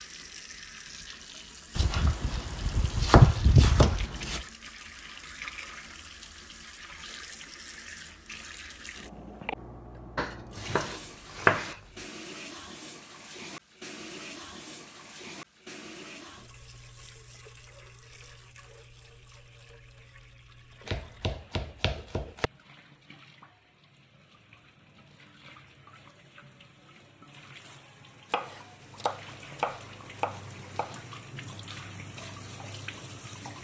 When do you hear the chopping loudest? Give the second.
3 s.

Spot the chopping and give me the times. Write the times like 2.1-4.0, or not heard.
1.8-4.5, 10.2-11.8, 20.9-22.5, 28.3-31.1.